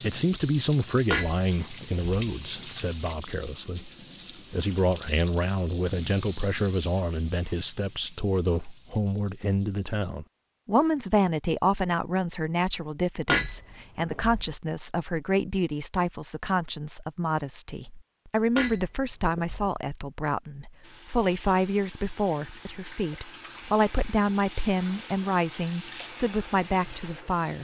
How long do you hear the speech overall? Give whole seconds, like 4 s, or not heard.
27 s.